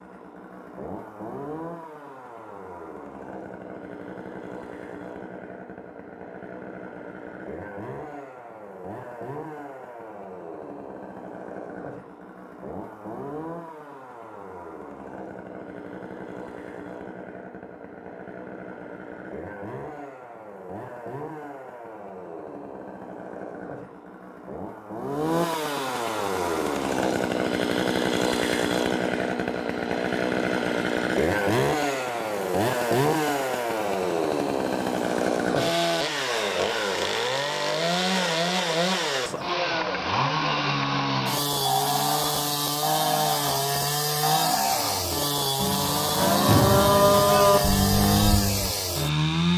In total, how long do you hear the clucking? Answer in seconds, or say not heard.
not heard.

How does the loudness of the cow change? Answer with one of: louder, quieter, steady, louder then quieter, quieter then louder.
louder.